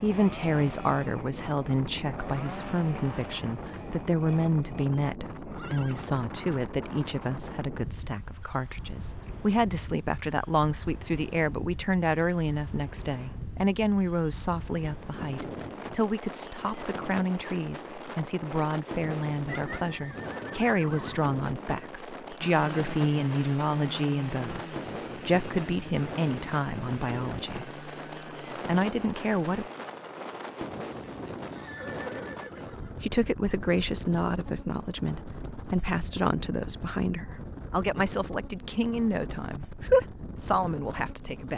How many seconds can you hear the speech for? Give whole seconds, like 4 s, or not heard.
37 s.